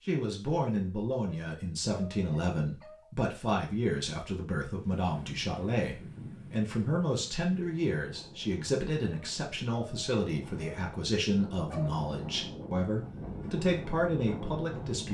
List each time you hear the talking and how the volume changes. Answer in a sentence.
The talking can be heard from 0.1 to 15.0 s, at a steady volume.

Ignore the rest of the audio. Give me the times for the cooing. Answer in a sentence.
The cooing can't be heard in this clip.